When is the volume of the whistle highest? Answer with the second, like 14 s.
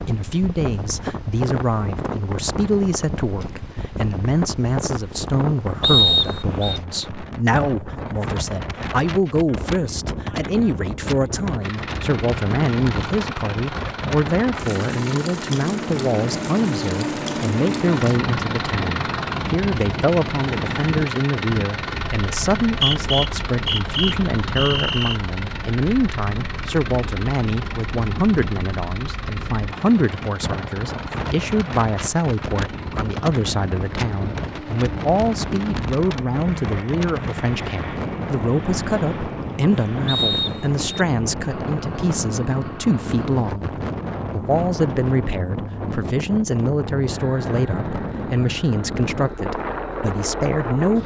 6 s.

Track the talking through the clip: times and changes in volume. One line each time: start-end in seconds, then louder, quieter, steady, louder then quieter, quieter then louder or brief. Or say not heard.
0.1-51.0 steady.